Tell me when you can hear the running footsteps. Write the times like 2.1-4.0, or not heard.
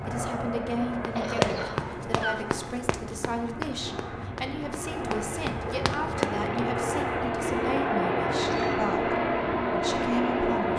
1.0-6.6.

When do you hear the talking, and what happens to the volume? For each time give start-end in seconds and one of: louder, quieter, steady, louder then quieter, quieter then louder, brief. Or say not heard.
0.0-10.7 steady.